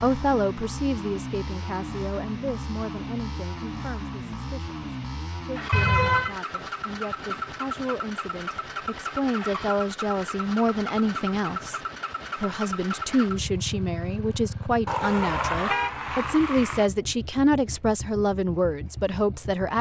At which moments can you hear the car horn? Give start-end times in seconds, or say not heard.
5.7-6.3, 14.8-16.9.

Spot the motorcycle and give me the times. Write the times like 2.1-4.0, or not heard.
0.0-19.7.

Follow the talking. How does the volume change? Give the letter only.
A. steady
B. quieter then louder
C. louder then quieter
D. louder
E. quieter
B.